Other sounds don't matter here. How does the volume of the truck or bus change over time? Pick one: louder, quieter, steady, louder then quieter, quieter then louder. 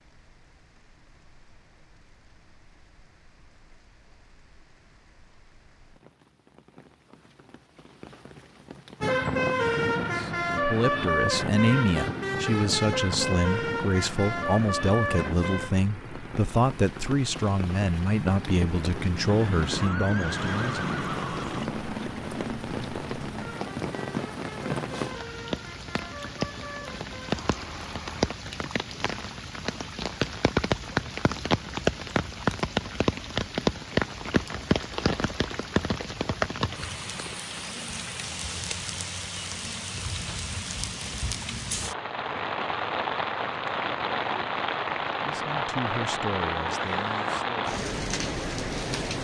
quieter.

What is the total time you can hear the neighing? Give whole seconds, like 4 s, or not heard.
3 s.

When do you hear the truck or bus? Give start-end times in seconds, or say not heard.
9.0-28.2.